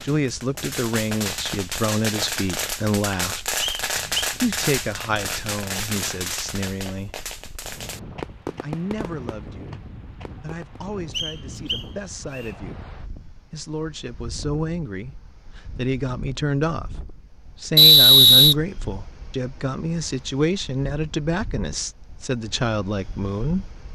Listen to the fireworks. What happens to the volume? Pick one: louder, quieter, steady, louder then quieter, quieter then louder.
quieter.